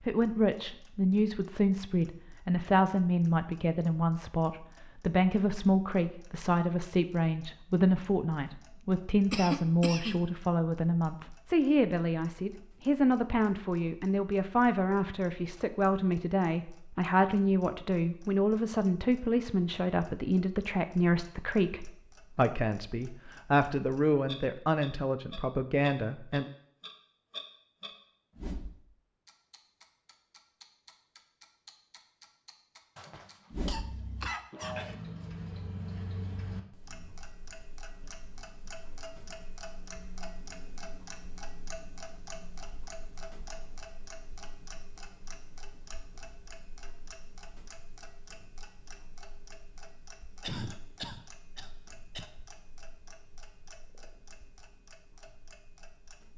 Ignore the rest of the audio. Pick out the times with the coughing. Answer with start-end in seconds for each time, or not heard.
9.3-10.2, 33.0-35.0, 50.4-52.2.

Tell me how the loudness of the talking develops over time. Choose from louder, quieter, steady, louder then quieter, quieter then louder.
steady.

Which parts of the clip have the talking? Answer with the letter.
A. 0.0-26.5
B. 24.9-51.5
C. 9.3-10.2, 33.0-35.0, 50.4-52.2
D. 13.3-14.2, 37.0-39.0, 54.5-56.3
A.